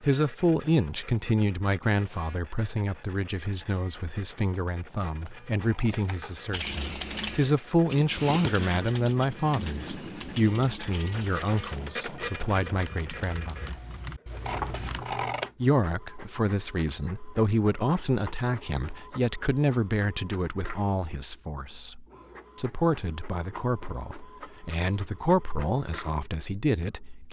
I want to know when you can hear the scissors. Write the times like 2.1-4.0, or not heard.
5.1-6.5, 14.4-15.5.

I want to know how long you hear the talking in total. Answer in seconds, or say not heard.
25 s.